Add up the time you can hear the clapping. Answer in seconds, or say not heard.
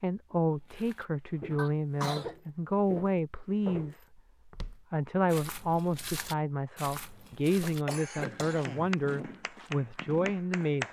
2 s.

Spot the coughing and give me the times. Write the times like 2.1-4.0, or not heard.
1.6-2.4, 7.5-8.9.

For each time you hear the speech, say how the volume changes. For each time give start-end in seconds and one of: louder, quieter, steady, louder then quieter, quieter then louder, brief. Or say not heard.
0.0-10.8 steady.